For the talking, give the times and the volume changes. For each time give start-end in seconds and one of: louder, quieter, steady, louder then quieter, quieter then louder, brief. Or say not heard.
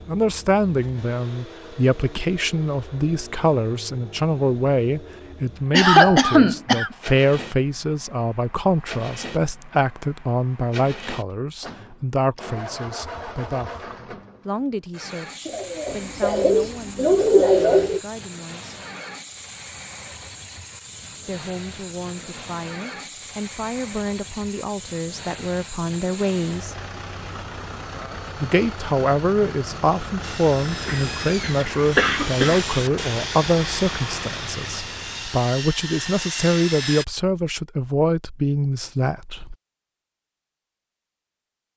0.1-18.8 quieter
21.2-26.8 louder
28.4-39.5 steady.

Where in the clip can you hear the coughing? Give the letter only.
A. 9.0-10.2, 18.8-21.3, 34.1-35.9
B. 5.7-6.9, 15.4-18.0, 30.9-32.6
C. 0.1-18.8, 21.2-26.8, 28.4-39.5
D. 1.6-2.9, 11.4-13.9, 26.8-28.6
B.